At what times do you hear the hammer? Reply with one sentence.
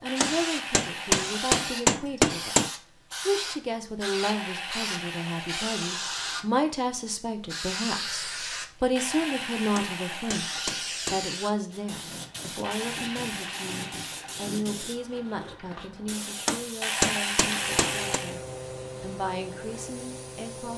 You can hear the hammer from 0.2 to 2.7 s, from 9.8 to 11.2 s and from 16.4 to 18.2 s.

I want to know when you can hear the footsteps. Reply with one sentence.
You can't hear the footsteps here.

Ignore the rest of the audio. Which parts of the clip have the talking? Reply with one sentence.
The talking can be heard from 0.0 to 18.4 s and from 19.0 to 20.7 s.